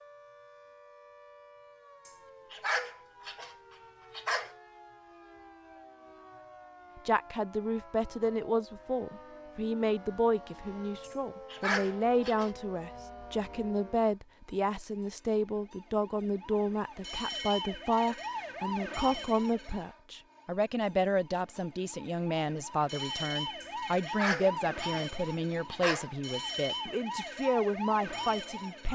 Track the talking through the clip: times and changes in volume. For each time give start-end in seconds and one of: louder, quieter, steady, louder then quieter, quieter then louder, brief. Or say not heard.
7.0-28.9 steady.